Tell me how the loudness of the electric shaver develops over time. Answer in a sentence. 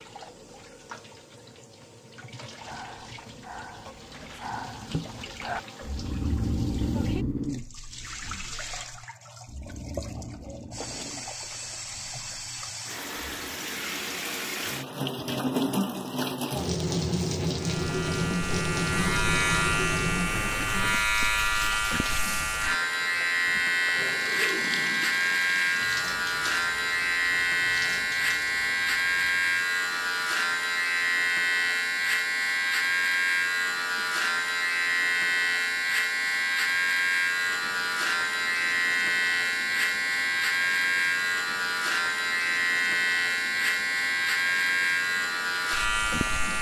The loudness of the electric shaver stays about the same.